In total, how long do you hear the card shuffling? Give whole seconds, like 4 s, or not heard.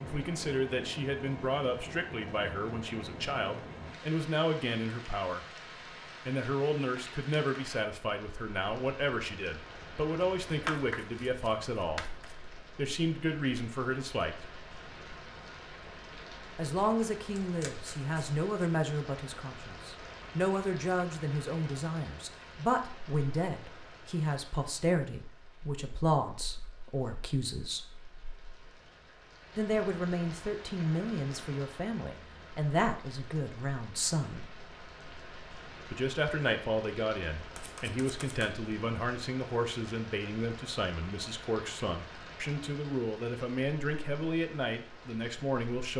4 s.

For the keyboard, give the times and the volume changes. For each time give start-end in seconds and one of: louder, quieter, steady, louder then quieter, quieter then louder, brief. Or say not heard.
not heard.